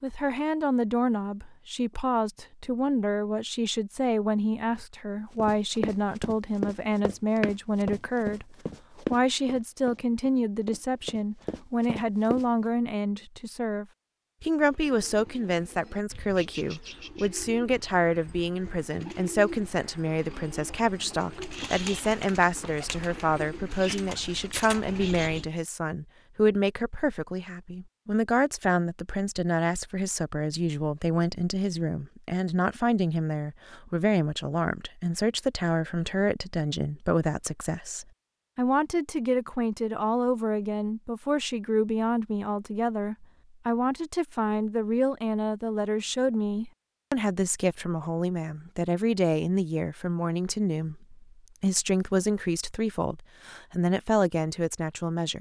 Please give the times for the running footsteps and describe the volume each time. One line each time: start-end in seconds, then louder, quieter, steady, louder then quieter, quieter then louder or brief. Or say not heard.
5.3-12.4 quieter.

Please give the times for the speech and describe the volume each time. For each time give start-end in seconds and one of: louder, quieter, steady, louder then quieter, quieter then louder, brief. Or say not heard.
0.0-55.3 steady.